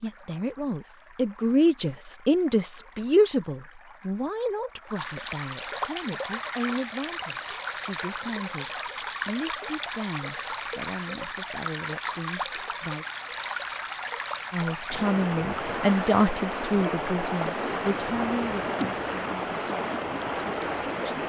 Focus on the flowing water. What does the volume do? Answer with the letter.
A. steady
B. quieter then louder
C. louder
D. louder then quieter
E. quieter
C.